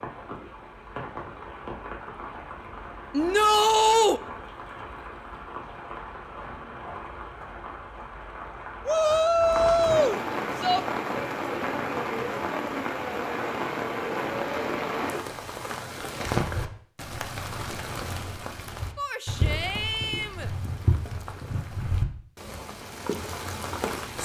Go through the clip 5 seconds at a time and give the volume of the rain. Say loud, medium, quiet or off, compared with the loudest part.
medium, medium, loud, loud, loud.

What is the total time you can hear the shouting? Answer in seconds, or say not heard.
5 s.